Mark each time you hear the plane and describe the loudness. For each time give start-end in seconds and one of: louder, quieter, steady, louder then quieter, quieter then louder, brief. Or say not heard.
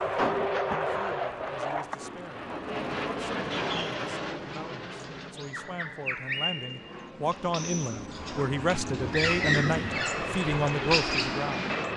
0.0-11.9 quieter then louder.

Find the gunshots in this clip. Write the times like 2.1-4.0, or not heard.
0.1-2.0.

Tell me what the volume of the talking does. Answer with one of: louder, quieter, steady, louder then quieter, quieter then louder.
louder.